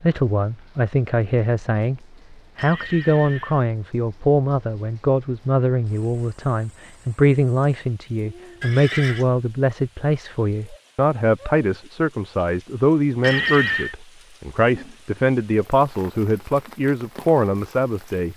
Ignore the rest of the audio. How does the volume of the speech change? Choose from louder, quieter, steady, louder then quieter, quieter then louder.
steady.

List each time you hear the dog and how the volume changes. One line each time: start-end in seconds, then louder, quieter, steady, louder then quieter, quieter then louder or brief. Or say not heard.
not heard.